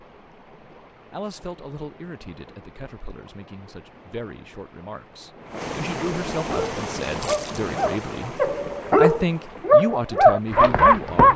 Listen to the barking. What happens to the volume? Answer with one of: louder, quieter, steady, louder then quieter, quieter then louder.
louder.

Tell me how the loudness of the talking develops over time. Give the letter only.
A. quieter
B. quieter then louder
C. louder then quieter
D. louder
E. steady
D.